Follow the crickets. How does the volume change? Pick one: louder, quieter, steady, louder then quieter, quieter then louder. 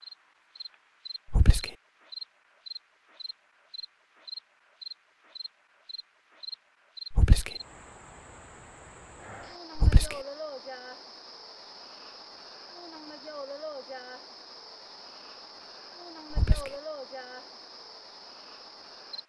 steady.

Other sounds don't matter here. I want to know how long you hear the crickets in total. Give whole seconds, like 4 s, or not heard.
19 s.